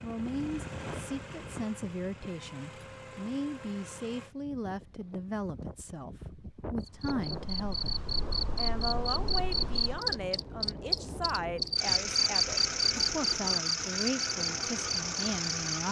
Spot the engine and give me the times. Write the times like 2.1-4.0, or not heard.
0.0-4.3, 11.8-15.8.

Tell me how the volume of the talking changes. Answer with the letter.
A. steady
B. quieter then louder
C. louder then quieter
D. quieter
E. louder
A.